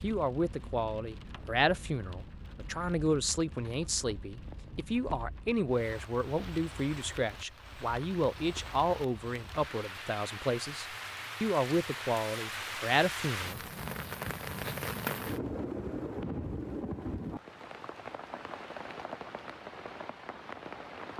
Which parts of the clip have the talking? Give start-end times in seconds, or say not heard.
0.0-13.6.